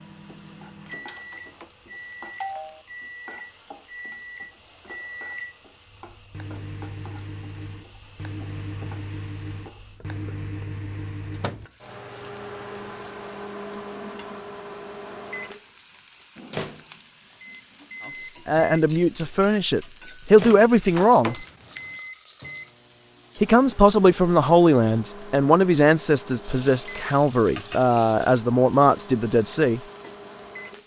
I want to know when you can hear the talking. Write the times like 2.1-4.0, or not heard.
18.1-21.4, 23.4-29.8.